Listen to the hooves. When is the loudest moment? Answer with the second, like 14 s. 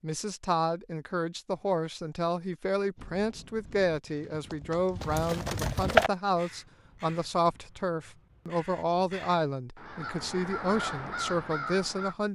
6 s.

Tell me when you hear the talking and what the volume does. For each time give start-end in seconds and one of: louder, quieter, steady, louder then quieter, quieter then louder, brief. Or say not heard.
0.0-12.3 steady.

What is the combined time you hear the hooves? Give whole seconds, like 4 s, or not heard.
3 s.